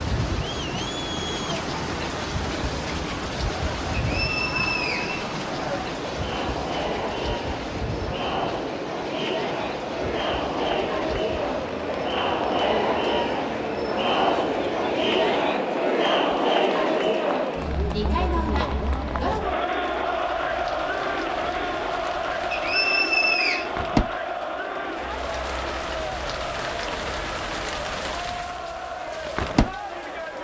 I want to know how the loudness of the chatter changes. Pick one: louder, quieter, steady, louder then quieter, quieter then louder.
louder then quieter.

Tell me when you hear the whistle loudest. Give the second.
23 s.